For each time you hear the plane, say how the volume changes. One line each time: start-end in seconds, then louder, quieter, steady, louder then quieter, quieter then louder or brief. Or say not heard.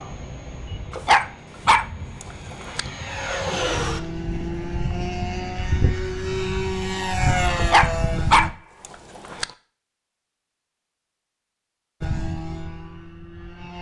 0.0-8.5 louder
12.0-13.7 brief.